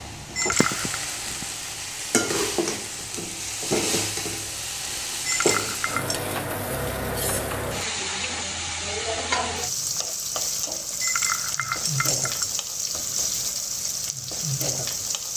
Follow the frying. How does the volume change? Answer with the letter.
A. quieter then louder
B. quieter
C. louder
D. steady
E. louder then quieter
D.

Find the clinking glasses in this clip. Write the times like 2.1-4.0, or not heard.
0.3-0.9, 5.2-6.2, 11.0-12.5.